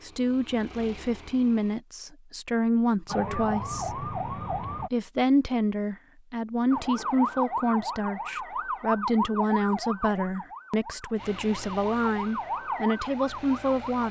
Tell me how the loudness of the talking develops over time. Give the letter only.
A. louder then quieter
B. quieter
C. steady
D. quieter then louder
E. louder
C.